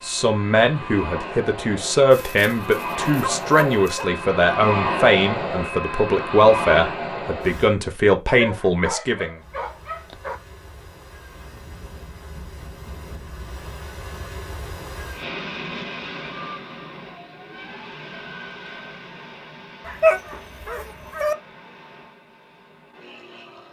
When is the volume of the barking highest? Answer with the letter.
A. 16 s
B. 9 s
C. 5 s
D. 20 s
D.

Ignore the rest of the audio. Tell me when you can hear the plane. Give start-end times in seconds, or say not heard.
0.0-7.7, 9.3-23.6.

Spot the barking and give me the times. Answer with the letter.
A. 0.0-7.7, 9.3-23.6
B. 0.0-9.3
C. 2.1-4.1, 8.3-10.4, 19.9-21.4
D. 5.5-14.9
C.